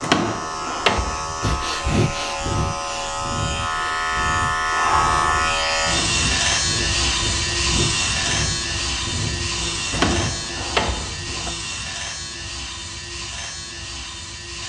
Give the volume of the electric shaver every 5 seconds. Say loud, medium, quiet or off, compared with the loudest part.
loud, loud, medium.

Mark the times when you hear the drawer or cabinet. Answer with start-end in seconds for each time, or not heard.
0.0-1.4, 5.8-6.3, 9.9-11.5.